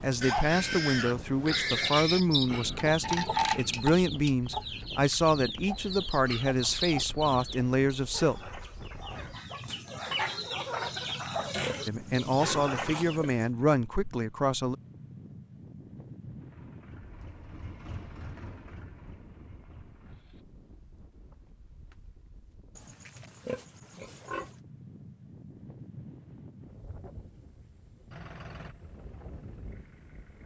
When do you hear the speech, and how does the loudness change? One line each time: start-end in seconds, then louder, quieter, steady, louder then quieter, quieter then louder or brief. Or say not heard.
0.0-8.5 steady
11.8-14.8 brief.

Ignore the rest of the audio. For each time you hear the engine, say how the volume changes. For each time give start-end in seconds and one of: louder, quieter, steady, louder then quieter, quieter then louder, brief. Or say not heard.
16.2-20.4 louder then quieter
28.1-30.4 brief.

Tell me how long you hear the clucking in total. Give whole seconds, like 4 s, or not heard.
12 s.